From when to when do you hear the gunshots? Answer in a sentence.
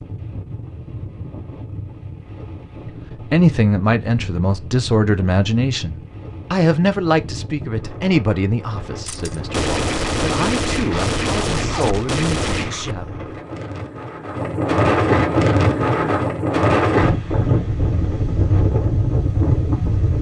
The gunshots can be heard from 9.1 to 12.9 s.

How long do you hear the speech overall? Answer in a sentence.
You can hear the speech for 10 seconds altogether.